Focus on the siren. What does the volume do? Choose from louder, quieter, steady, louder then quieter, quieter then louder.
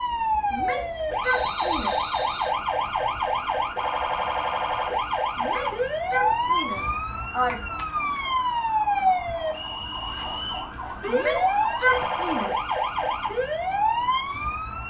steady.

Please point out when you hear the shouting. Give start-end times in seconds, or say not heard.
0.5-1.9, 5.3-7.6, 11.1-12.7.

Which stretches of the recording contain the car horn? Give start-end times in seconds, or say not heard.
not heard.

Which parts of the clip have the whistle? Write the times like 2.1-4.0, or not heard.
1.2-2.5, 9.5-10.8.